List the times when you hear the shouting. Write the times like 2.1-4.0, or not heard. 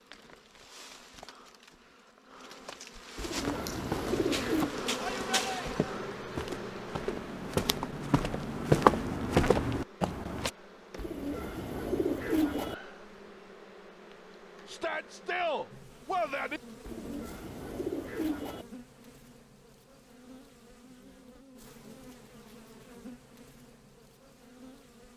5.0-5.8, 14.7-16.6.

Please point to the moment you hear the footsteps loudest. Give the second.
9 s.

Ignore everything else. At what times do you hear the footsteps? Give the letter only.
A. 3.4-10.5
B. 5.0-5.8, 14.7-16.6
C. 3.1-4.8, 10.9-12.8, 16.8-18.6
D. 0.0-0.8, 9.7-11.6
A.